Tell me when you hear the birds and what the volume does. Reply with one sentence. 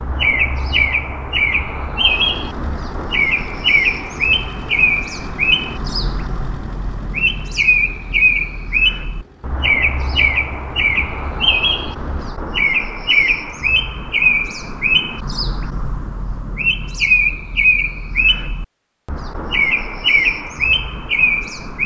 The birds can be heard from 0.0 to 21.8 s, at a steady volume.